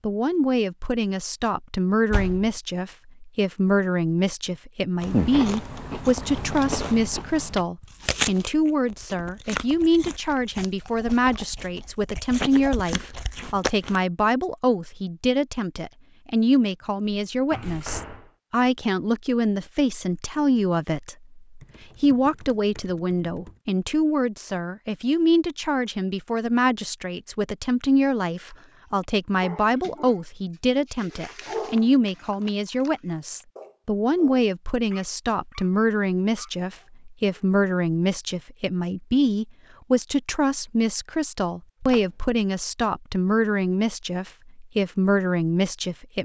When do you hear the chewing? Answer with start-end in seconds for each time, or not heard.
5.0-14.0.